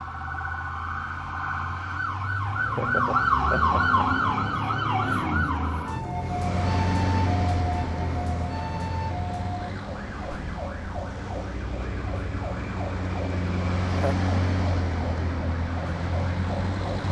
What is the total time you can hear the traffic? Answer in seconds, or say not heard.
11 s.